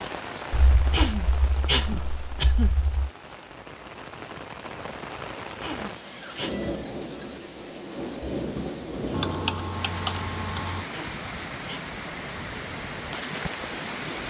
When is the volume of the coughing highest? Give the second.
2 s.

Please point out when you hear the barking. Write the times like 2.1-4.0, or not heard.
not heard.